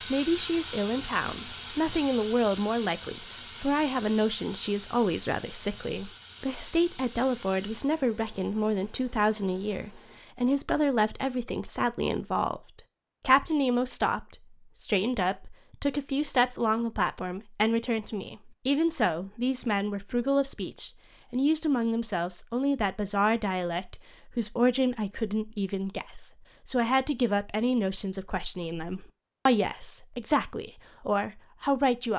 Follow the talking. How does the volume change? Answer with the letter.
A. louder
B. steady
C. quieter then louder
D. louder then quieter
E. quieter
B.